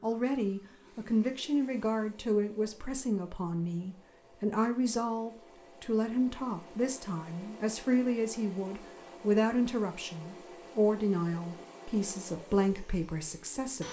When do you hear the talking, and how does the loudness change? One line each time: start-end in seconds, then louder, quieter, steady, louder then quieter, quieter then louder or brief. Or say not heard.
0.0-13.8 steady.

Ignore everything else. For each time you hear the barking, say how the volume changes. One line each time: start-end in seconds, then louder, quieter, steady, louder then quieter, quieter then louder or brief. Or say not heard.
not heard.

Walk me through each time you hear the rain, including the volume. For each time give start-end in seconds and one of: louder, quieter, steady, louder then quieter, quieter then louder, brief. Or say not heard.
not heard.